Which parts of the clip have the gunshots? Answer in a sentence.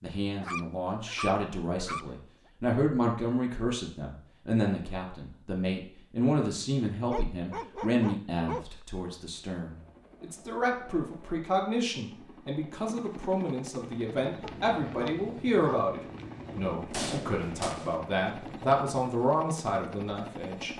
You can hear the gunshots from 16.6 to 17.9 s.